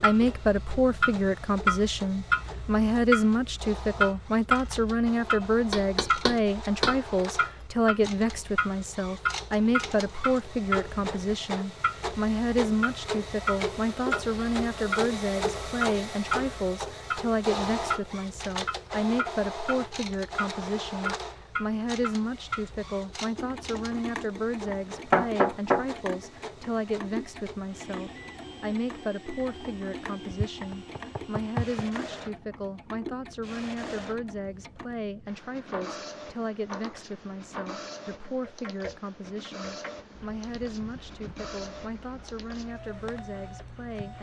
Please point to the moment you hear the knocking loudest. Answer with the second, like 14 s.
25 s.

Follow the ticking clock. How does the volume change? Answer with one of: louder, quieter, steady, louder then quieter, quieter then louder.
quieter.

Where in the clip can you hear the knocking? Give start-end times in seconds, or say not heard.
5.7-7.0, 24.6-25.9, 30.3-31.9.